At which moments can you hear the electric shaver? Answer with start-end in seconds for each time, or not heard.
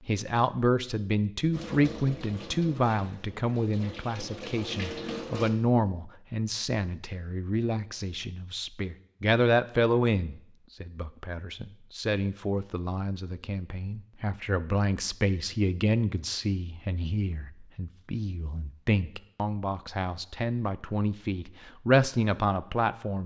not heard.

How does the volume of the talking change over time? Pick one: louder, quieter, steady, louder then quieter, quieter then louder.
steady.